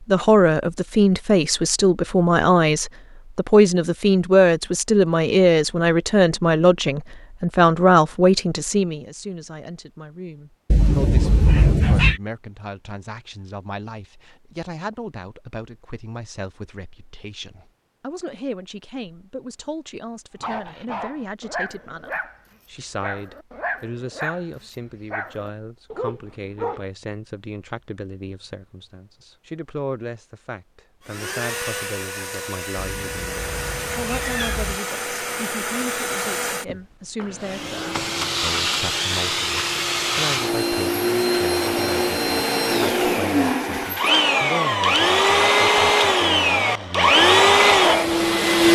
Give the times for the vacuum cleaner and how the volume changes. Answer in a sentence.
The vacuum cleaner can be heard from 31.0 to 48.6 s, getting louder.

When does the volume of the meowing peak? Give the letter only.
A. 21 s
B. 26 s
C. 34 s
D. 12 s
D.